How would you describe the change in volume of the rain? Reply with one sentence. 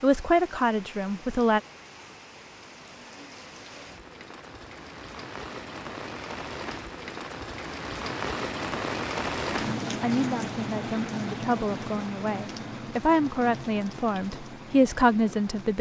The volume of the rain goes up, then down.